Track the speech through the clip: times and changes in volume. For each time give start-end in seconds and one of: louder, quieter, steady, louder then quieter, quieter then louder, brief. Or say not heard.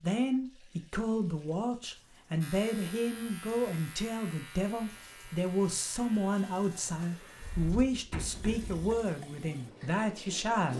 0.0-10.7 steady.